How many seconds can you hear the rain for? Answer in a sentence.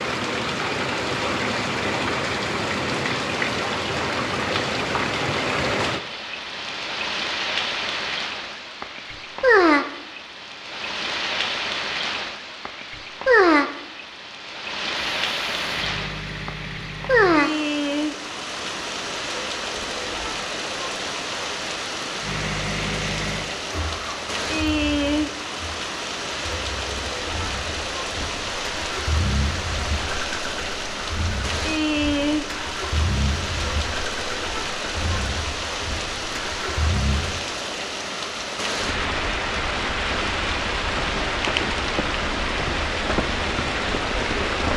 You can hear the rain for 45 seconds altogether.